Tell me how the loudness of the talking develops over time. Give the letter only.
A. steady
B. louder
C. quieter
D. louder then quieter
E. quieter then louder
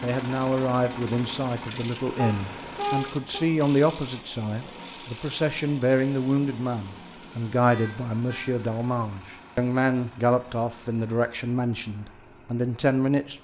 A.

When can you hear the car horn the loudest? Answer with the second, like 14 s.
3 s.